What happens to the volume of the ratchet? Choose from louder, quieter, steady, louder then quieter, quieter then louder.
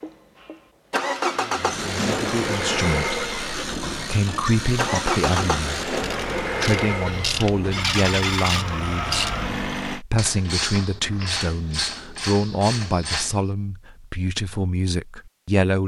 steady.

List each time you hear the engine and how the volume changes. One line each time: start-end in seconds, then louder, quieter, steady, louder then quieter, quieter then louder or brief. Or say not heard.
0.0-10.0 steady.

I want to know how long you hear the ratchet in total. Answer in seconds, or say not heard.
12 s.